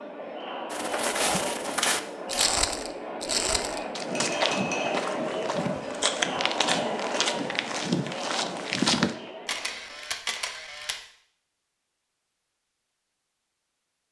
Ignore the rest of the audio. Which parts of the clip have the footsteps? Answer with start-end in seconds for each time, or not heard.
0.7-9.2.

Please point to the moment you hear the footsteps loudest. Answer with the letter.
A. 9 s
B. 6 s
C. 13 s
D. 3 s
A.